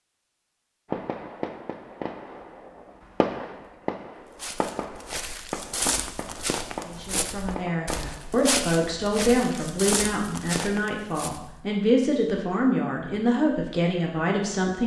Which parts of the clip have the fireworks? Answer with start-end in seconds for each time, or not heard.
0.8-8.8.